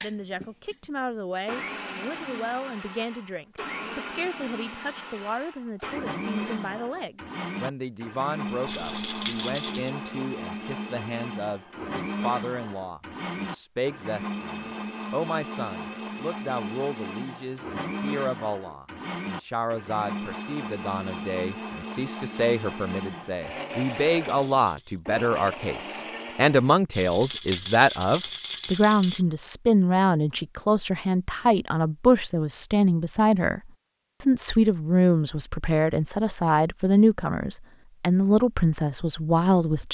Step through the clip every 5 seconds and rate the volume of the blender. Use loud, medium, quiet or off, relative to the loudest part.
loud, loud, loud, loud, loud, loud, off, off.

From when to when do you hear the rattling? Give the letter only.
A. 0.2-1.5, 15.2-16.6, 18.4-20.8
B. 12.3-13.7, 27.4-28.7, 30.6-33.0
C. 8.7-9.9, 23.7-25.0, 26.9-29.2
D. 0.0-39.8
C.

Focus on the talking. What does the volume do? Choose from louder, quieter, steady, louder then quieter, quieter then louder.
louder.